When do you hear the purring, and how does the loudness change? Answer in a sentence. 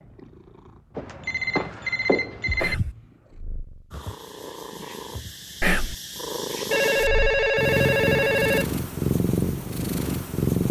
You can hear the purring from 0.0 to 10.6 s, getting louder.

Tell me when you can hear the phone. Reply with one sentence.
You can hear the phone from 0.9 to 2.8 s and from 6.7 to 8.7 s.